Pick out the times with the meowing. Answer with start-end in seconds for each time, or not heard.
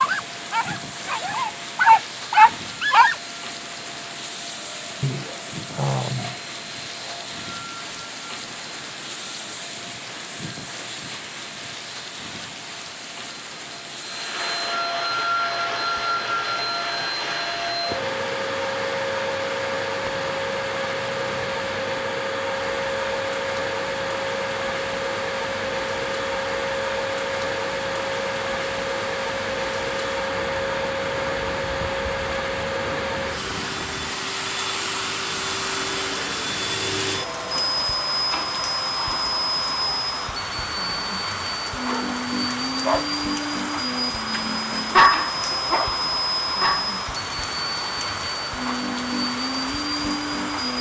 not heard.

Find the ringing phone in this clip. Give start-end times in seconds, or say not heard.
5.0-6.4.